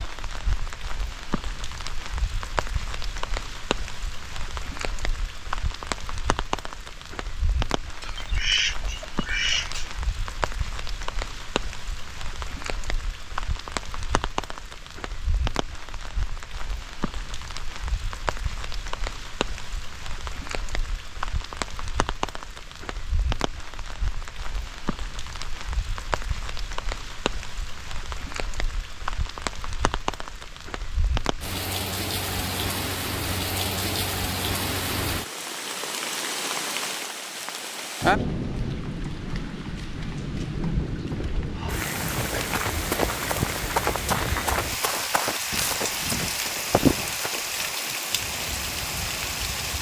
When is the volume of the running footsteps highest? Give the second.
47 s.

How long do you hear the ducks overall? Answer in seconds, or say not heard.
2 s.